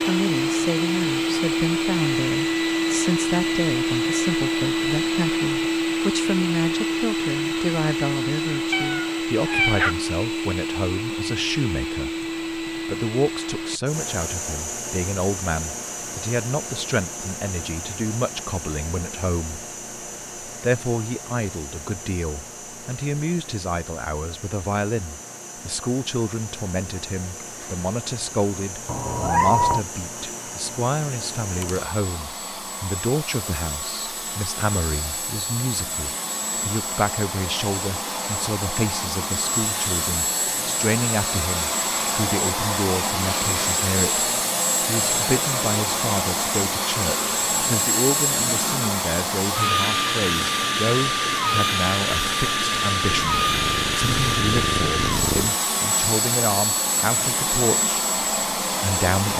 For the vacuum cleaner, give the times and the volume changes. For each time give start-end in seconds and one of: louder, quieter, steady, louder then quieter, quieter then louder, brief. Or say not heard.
0.0-59.3 quieter then louder.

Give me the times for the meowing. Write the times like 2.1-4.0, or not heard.
8.7-9.9, 28.9-29.8, 53.0-55.5.